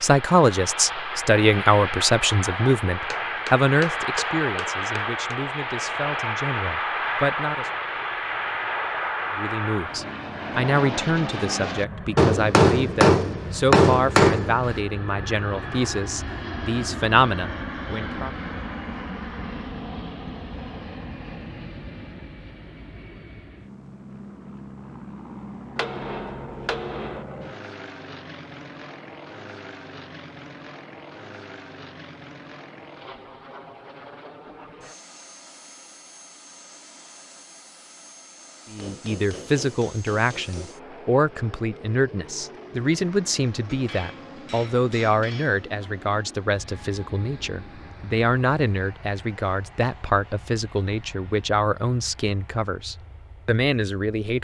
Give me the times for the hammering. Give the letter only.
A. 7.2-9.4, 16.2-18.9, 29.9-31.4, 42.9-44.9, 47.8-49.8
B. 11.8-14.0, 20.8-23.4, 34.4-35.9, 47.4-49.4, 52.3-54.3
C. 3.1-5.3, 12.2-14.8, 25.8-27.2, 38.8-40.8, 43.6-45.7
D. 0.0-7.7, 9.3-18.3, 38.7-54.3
C.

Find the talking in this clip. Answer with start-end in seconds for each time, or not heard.
0.0-7.7, 9.3-18.3, 38.7-54.3.